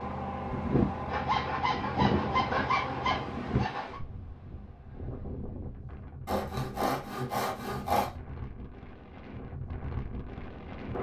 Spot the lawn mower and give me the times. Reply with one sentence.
You can hear the lawn mower from 0.0 to 3.6 s.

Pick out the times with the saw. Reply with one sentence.
You can hear the saw from 1.1 to 4.0 s and from 6.2 to 8.1 s.